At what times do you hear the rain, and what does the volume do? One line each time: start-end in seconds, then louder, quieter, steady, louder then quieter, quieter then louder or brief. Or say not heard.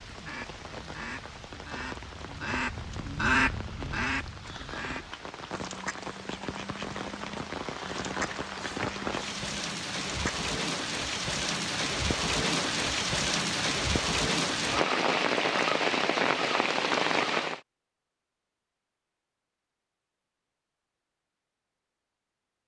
0.0-17.6 louder.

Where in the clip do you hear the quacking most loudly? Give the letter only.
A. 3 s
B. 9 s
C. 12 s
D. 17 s
A.